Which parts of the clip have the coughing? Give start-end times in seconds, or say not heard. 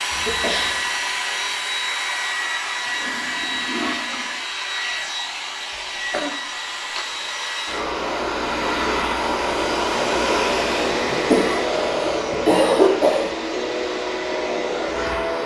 0.1-0.9, 5.7-6.3, 10.9-13.3.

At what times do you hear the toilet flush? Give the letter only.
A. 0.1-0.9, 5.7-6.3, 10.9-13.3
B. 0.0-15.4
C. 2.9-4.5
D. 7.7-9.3
C.